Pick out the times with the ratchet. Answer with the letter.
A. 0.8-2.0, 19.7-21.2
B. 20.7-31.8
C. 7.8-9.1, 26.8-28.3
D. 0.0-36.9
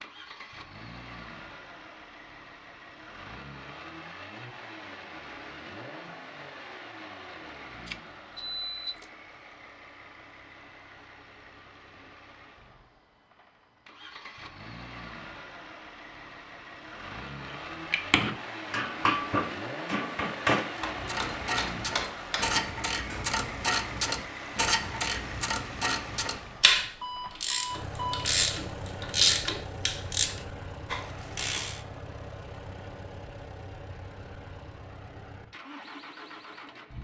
B.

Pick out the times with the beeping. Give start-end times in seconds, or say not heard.
7.8-9.1, 26.8-28.3.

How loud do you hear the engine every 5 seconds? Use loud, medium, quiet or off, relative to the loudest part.
medium, medium, medium, loud, loud, loud, medium, medium.